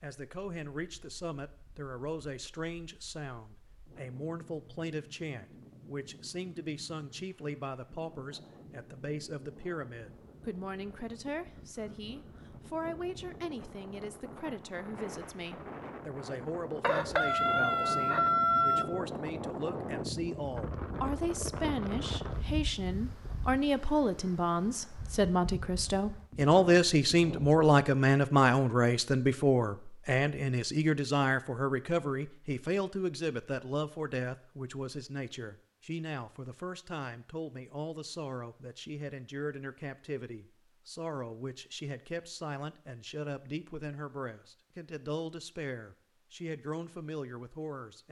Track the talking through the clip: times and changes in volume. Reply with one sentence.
The talking can be heard from 0.0 to 48.0 s, getting louder then quieter.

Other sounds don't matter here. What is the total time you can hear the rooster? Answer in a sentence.
The rooster can be heard for 2 seconds in total.